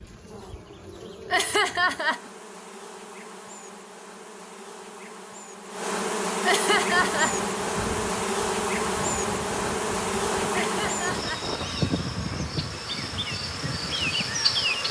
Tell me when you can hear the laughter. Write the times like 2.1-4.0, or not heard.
1.3-2.2, 6.4-7.3, 10.6-11.4.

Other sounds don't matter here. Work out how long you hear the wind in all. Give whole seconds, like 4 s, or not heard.
8 s.